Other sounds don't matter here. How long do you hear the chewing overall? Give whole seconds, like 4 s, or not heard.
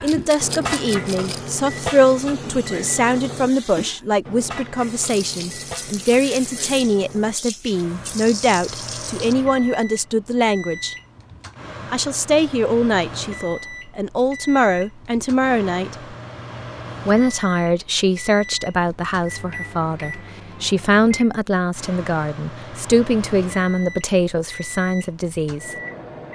not heard.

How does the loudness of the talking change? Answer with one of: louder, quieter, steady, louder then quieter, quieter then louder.
steady.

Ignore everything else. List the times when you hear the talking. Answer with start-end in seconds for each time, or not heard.
0.0-10.9, 11.8-16.1, 17.1-25.8.